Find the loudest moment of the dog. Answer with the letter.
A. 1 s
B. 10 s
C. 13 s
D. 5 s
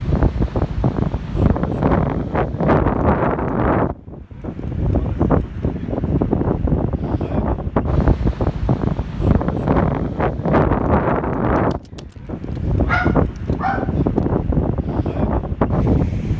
C.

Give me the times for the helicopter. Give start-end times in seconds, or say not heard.
not heard.